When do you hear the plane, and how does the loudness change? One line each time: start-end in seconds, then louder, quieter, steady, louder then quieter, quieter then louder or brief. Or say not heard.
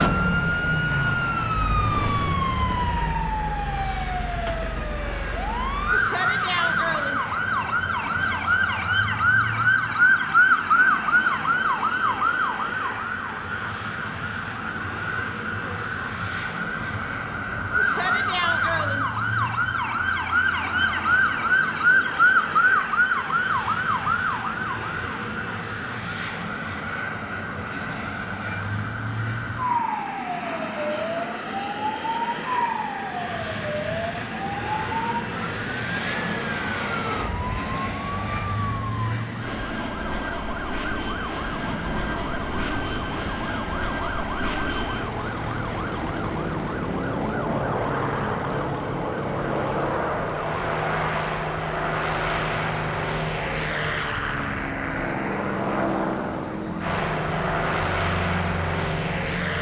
0.0-59.5 louder.